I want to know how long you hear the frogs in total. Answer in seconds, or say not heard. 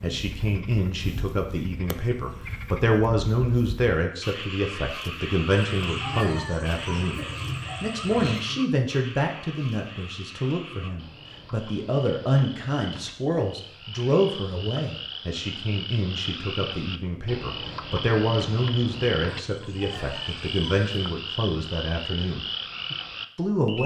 24 s.